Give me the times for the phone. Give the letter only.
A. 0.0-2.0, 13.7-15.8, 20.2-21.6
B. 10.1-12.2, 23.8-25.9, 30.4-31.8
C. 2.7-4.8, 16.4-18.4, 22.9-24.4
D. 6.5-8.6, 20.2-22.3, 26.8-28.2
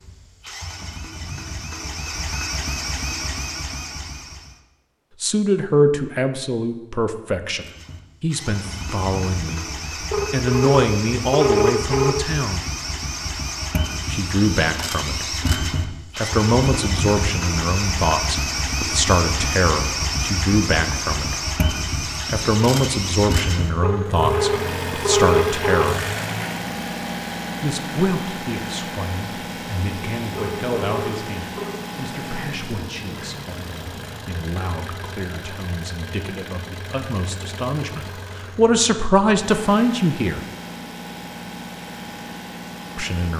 B.